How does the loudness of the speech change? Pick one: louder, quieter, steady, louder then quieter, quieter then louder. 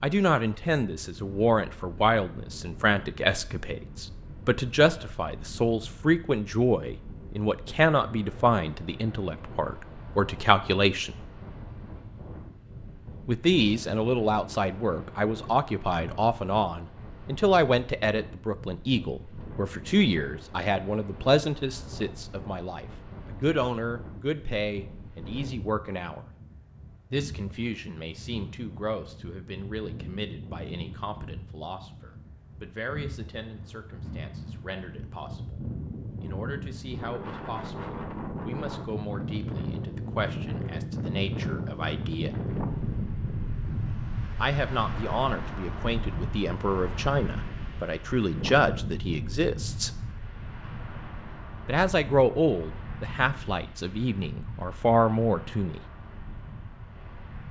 quieter then louder.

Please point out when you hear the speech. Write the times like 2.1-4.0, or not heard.
0.0-11.2, 13.2-26.2, 27.1-42.4, 44.4-49.9, 51.6-55.8.